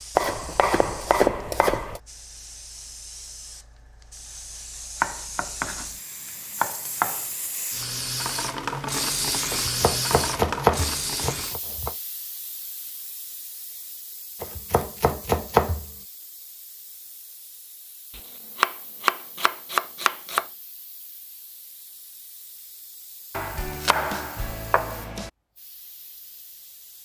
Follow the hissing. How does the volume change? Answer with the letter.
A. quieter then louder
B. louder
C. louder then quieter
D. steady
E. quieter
C.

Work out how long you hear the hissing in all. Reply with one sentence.
The hissing can be heard for 27 seconds in total.